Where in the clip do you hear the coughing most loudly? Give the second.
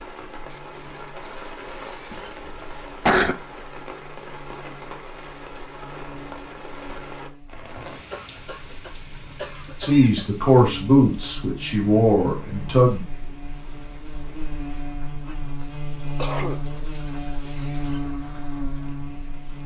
3 s.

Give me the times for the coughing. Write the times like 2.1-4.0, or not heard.
2.1-3.4, 8.1-10.3, 15.6-16.6.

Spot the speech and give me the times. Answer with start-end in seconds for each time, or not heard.
9.8-13.0.